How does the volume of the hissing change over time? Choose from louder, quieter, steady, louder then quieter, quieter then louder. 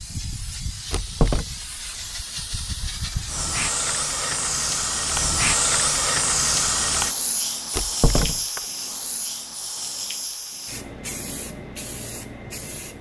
louder then quieter.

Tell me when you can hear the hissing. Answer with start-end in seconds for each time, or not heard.
0.0-12.9.